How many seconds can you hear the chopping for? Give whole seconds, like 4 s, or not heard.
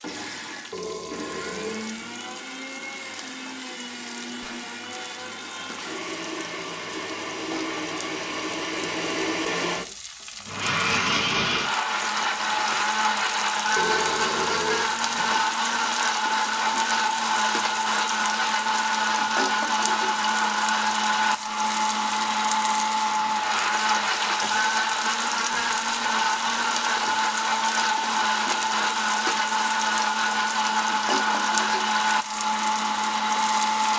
not heard.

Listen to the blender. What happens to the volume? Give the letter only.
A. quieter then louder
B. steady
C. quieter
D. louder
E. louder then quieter
D.